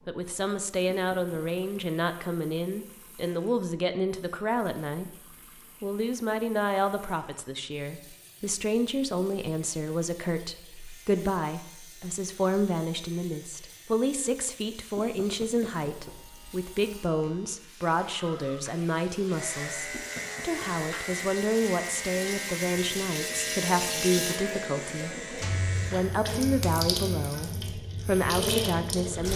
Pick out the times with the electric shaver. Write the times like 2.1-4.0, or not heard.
10.7-26.1.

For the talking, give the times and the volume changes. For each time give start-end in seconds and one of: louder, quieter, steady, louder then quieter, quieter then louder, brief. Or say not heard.
0.1-5.2 steady
5.8-29.3 steady.